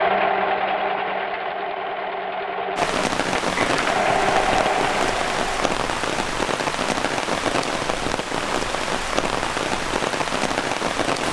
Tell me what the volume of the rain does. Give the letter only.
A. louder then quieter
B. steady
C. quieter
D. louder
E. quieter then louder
B.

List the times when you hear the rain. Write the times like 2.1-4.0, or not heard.
2.8-11.2.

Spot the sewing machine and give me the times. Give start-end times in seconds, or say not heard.
0.0-5.8.